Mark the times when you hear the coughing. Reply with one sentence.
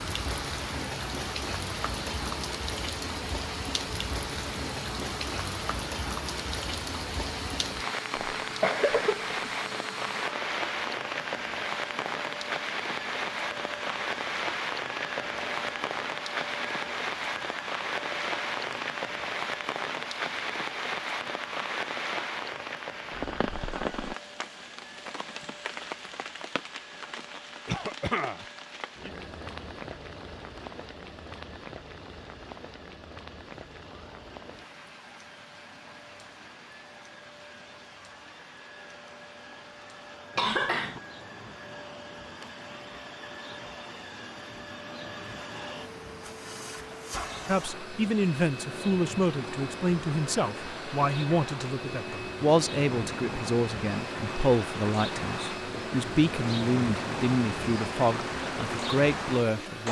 You can hear the coughing from 8.4 to 9.3 s, from 27.6 to 28.4 s and from 40.4 to 41.0 s.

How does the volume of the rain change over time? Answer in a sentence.
The loudness of the rain goes down, then up.